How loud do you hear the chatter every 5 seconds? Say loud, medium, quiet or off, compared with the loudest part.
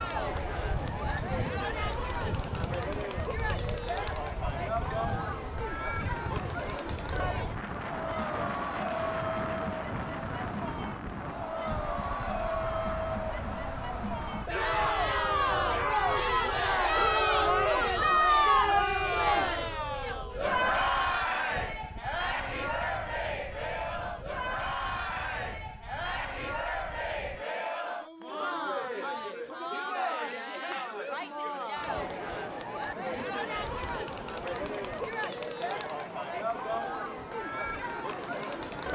medium, medium, medium, loud, medium, medium, medium, medium.